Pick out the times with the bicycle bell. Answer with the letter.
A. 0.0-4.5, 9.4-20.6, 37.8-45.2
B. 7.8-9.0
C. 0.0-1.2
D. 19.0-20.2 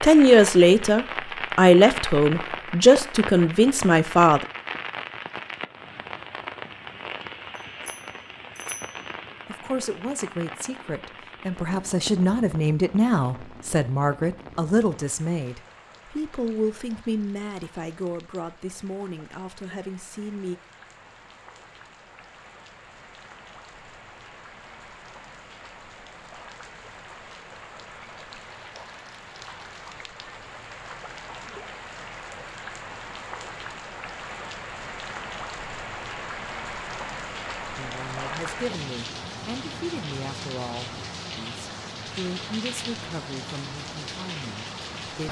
B.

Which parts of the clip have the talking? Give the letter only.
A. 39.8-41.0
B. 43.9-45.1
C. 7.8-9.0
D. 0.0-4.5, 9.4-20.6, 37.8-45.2
D.